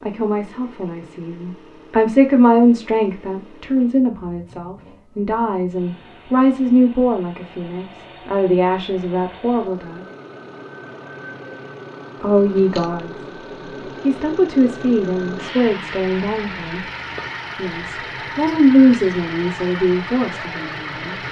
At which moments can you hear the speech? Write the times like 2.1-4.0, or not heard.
0.0-10.1, 12.2-13.2, 14.0-16.8, 17.6-21.1.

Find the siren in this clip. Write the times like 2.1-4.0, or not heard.
not heard.